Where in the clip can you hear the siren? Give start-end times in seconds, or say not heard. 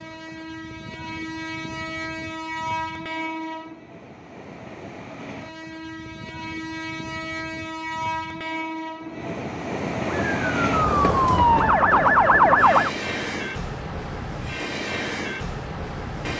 10.1-12.9.